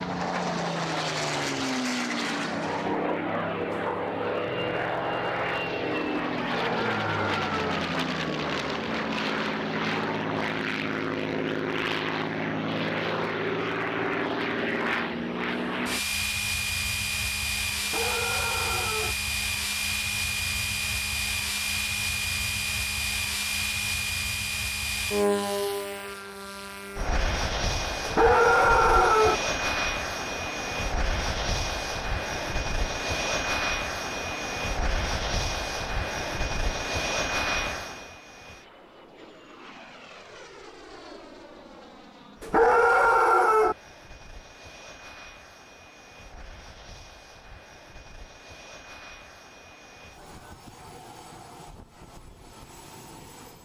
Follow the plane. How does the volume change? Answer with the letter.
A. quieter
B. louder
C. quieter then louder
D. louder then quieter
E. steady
A.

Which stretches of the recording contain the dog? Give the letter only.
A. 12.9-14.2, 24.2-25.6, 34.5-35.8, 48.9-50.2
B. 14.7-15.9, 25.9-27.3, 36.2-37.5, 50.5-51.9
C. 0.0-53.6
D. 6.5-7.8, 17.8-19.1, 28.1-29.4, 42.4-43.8
D.